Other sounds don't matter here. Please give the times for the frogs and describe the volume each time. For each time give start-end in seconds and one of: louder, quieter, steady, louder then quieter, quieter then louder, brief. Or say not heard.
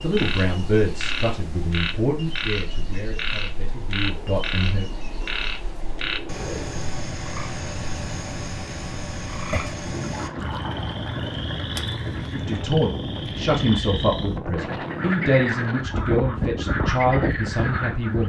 0.0-18.2 steady.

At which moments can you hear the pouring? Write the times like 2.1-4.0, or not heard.
10.1-12.7.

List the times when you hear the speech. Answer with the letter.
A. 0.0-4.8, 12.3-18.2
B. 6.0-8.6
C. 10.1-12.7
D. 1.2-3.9
A.